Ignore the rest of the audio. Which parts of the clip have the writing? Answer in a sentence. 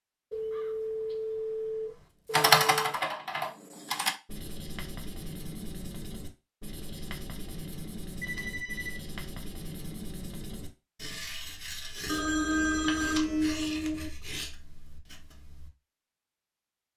The writing can be heard from 4.2 to 15.7 s.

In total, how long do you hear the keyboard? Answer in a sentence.
The keyboard can be heard for 2 seconds in total.